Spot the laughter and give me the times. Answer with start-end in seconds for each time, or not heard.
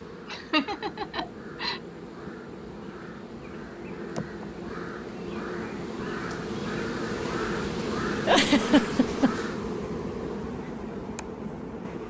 0.3-1.8, 8.2-9.4.